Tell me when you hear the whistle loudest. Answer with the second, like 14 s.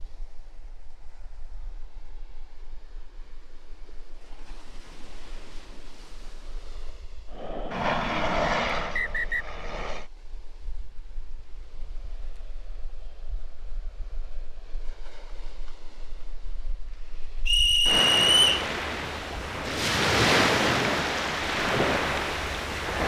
18 s.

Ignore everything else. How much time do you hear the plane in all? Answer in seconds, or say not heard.
3 s.